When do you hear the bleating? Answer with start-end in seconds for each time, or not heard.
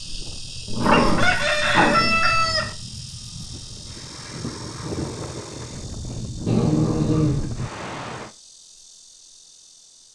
not heard.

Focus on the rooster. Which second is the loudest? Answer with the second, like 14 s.
2 s.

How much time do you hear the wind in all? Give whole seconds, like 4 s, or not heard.
8 s.